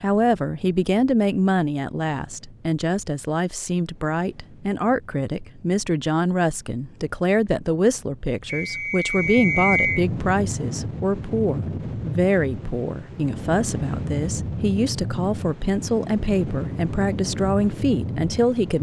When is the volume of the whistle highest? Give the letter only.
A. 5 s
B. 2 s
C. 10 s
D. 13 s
C.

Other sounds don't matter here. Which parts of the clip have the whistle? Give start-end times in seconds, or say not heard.
8.4-10.1.